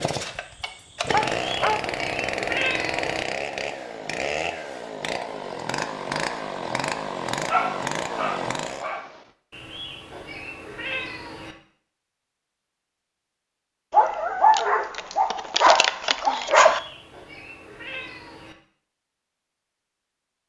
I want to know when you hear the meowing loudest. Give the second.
3 s.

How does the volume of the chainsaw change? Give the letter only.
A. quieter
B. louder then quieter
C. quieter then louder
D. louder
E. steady
E.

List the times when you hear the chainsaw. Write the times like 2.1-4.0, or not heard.
0.0-9.0.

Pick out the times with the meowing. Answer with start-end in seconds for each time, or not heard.
1.4-3.2, 9.5-11.6, 16.5-18.6.